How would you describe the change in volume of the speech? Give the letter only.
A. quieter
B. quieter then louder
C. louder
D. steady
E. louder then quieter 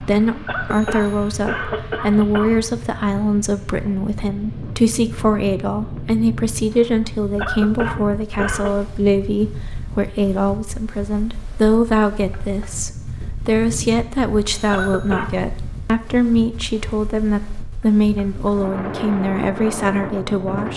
D.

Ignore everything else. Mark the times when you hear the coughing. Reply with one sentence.
The coughing can be heard from 0.5 to 2.5 s, from 7.3 to 8.8 s and from 14.7 to 15.3 s.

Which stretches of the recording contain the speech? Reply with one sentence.
You can hear the speech from 0.0 to 20.7 s.